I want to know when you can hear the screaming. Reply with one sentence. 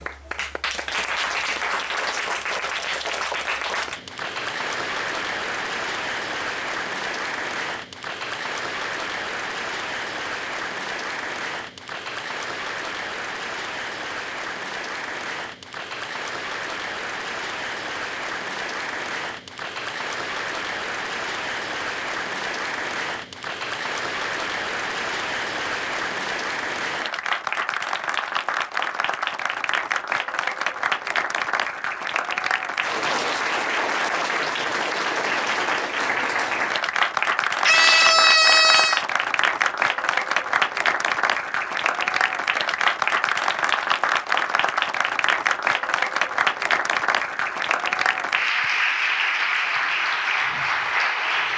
You can hear the screaming from 37.6 to 39.0 s.